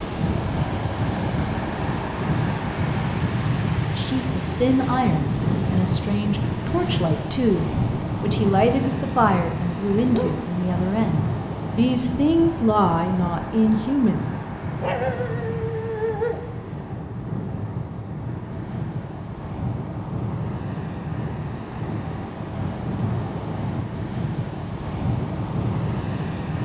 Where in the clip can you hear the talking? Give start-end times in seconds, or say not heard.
4.0-14.2.